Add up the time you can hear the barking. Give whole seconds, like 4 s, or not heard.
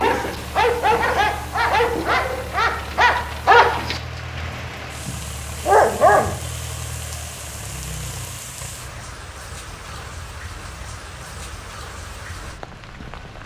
6 s.